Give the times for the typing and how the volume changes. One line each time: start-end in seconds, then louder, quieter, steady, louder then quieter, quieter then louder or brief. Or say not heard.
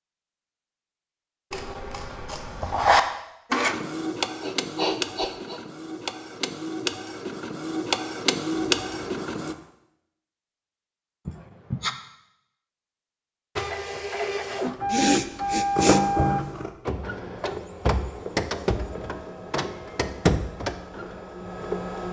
not heard.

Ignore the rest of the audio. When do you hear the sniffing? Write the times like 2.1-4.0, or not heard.
4.4-5.6, 11.2-11.9, 14.9-16.1.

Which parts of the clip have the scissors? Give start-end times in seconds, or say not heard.
1.5-3.0, 8.8-9.6, 15.8-16.7.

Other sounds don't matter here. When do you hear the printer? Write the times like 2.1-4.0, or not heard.
3.5-9.6, 13.6-22.0.